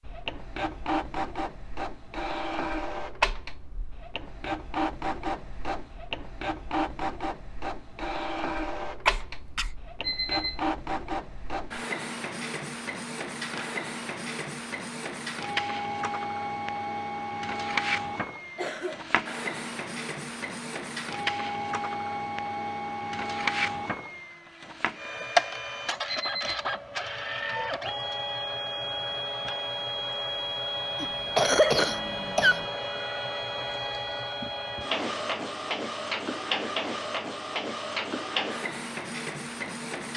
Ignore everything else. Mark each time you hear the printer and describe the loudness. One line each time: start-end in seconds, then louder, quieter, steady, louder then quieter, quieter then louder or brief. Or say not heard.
0.0-40.1 steady.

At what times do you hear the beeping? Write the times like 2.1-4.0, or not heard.
10.0-10.6, 26.1-26.6.